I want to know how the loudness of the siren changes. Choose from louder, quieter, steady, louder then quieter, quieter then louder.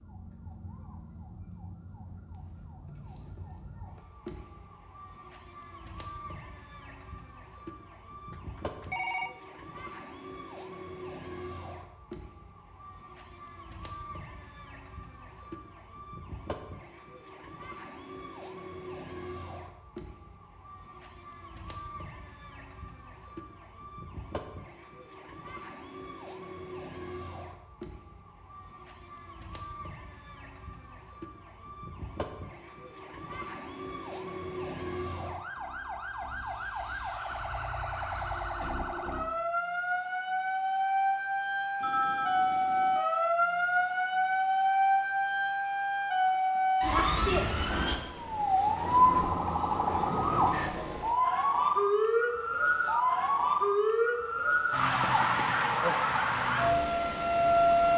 louder.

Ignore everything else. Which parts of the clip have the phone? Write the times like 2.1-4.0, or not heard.
8.3-9.3, 41.8-43.0.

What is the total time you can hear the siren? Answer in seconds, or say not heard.
58 s.